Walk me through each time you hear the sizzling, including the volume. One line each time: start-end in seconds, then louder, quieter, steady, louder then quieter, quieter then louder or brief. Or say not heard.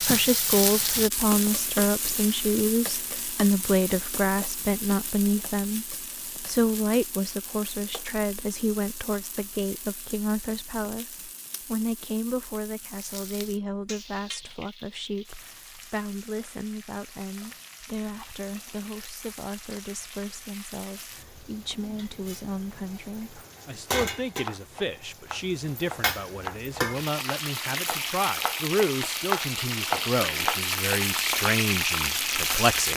0.0-32.9 quieter then louder.